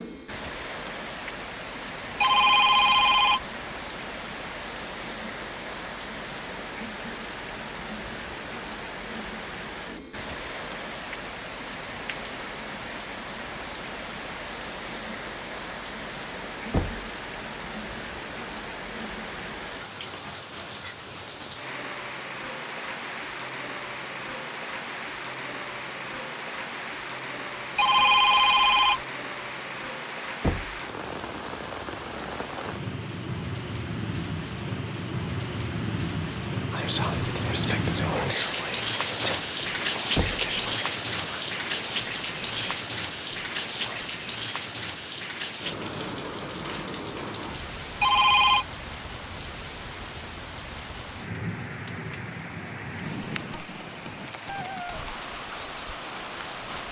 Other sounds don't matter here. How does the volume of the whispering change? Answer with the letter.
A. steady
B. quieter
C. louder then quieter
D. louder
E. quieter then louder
B.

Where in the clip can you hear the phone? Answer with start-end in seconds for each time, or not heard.
2.2-3.4, 27.8-29.0, 48.0-48.6.